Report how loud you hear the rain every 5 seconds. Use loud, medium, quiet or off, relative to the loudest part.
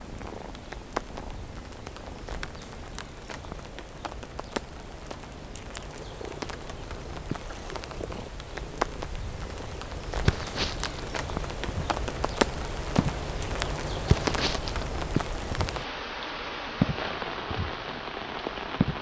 medium, medium, loud, loud.